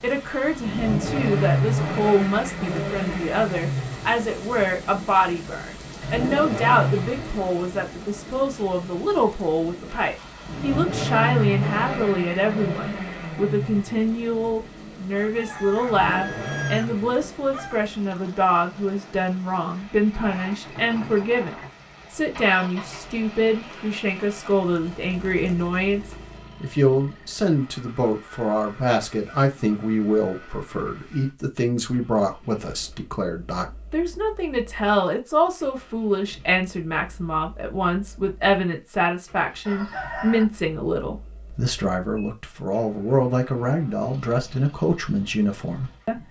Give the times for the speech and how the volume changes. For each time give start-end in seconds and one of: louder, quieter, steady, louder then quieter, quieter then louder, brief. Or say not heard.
0.0-46.2 steady.